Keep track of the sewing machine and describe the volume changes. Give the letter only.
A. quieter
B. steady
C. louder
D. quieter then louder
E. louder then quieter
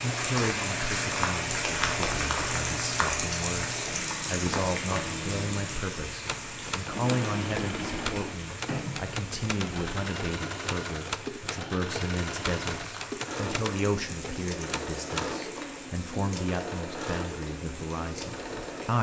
B.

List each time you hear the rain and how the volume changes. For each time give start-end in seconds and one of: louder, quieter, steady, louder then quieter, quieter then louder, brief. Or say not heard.
0.0-18.9 quieter.